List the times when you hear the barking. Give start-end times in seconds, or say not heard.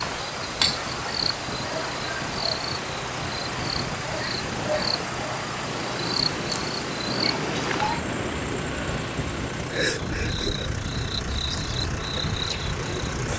not heard.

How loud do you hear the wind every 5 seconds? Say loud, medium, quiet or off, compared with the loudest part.
medium, loud, loud.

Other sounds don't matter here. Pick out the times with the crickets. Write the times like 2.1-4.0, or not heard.
0.0-13.3.